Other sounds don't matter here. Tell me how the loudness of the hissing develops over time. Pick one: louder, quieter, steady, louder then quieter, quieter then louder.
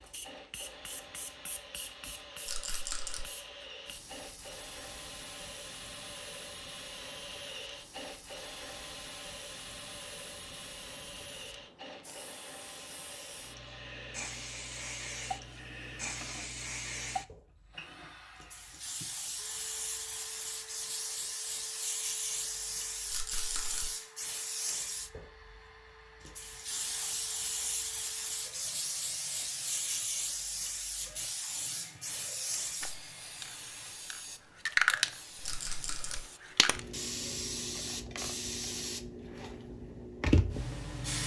louder.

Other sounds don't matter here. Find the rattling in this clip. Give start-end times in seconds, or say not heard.
2.5-3.2, 23.1-23.9, 35.4-36.2.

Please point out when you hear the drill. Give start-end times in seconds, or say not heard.
0.0-36.6.